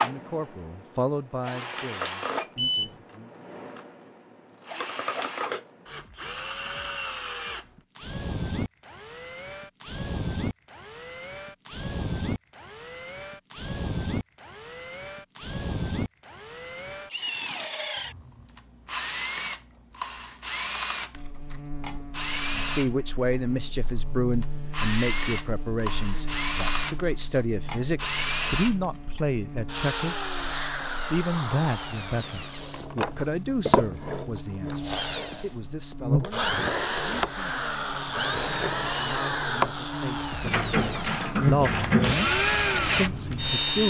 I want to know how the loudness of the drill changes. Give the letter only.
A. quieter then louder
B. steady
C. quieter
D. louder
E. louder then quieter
D.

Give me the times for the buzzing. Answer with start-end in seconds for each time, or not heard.
21.1-43.8.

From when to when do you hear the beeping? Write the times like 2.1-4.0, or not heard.
2.5-3.0.